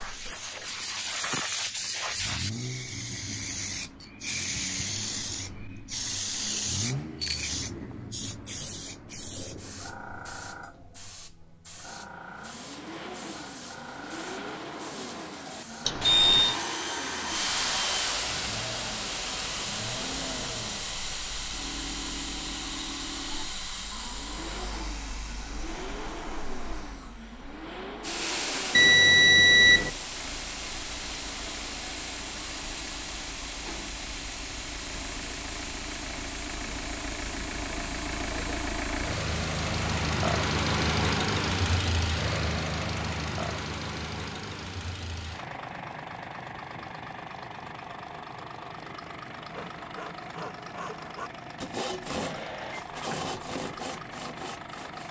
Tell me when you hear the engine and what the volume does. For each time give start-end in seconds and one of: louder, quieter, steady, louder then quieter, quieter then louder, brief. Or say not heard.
0.0-55.0 louder then quieter.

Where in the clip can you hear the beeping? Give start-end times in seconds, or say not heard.
15.8-16.6, 28.8-29.9, 52.2-52.9.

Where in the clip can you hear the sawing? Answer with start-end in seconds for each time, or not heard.
12.3-18.0, 49.3-55.0.